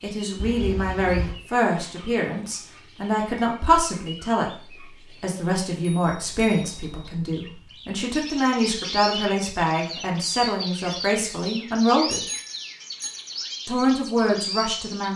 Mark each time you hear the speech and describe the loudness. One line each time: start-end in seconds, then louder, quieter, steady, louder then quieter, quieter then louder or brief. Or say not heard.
0.0-12.2 steady
13.7-15.1 brief.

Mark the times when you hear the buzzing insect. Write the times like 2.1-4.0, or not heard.
not heard.